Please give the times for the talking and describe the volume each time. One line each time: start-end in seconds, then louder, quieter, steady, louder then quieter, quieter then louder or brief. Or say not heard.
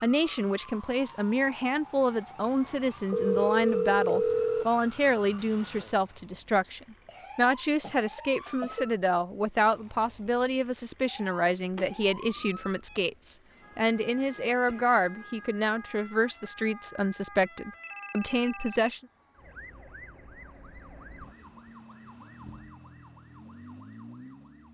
0.0-19.0 steady.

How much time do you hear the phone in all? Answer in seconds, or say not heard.
4 s.